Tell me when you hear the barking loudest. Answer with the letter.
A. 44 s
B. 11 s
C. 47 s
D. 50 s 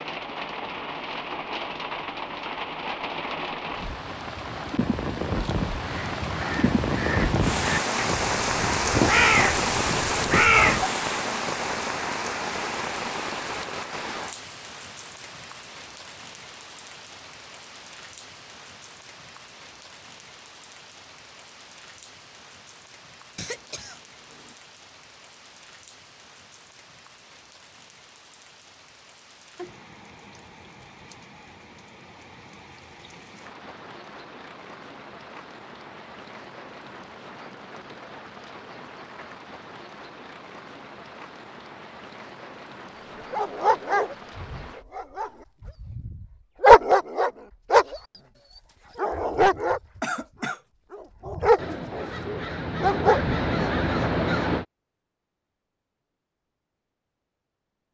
C.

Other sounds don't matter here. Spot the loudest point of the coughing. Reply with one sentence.
The loudest moment of the coughing is at 50 seconds.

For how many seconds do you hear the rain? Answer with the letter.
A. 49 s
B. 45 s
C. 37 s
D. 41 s
B.